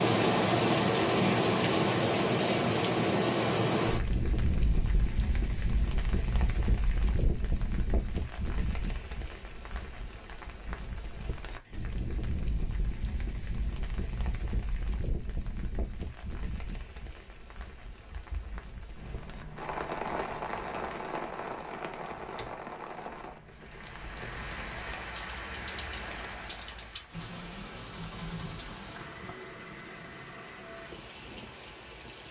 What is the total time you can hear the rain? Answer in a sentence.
The rain can be heard for 32 seconds in total.